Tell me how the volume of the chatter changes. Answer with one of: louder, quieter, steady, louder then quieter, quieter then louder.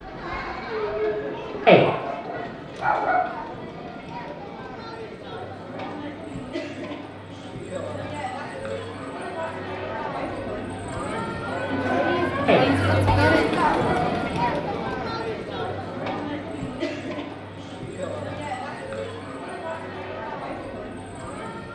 louder then quieter.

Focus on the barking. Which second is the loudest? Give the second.
2 s.